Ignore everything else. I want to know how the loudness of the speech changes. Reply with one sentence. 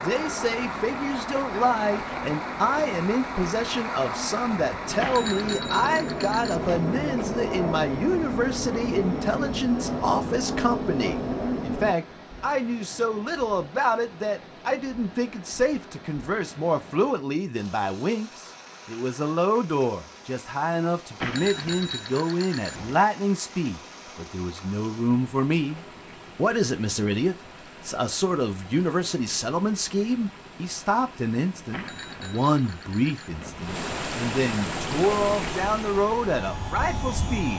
The volume of the speech stays about the same.